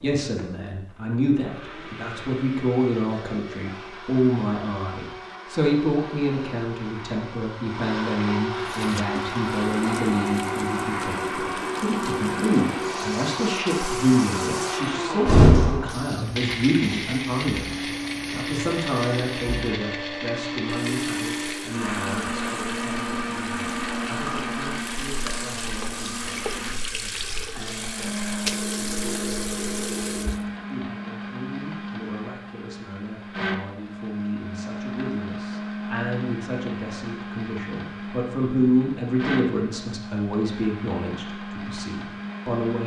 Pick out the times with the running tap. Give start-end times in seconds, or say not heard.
8.6-30.5.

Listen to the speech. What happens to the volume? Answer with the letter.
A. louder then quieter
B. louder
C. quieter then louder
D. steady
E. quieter
C.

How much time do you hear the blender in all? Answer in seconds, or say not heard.
43 s.